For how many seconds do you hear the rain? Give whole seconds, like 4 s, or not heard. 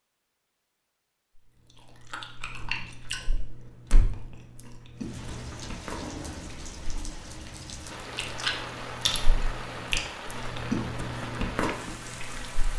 8 s.